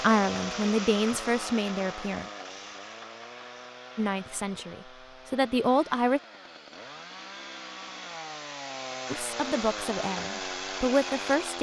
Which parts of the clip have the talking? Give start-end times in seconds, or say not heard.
0.0-2.3, 4.0-6.2, 9.1-11.5.